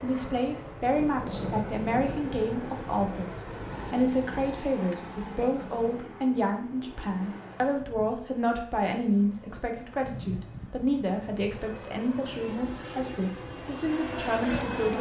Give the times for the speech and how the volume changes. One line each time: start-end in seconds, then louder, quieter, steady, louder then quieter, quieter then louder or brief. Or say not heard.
0.0-14.9 steady.